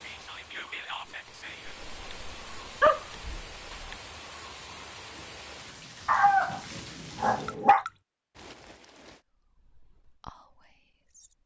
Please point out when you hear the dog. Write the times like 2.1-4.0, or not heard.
1.9-4.0, 6.0-7.8.